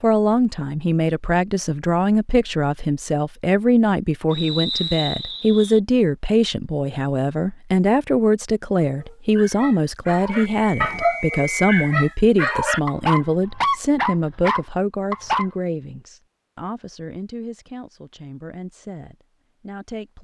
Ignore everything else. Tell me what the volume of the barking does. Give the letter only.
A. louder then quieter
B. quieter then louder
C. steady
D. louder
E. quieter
D.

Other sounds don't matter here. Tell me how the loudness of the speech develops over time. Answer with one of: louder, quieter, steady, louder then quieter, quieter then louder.
quieter.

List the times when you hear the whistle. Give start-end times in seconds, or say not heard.
4.3-5.8, 10.4-11.9.